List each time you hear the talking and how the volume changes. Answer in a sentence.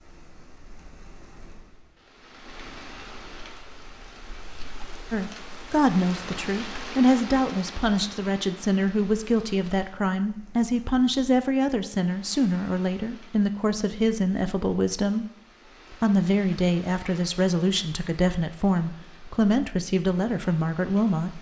You can hear the talking from 5.1 to 15.2 s, at a steady volume; and from 15.9 to 21.3 s, at a steady volume.